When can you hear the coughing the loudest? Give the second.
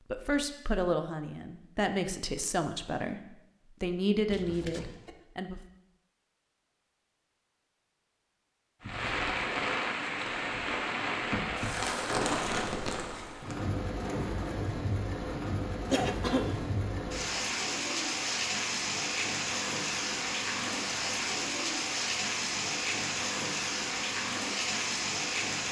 16 s.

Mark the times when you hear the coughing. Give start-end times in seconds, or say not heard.
4.3-5.2, 15.9-16.6.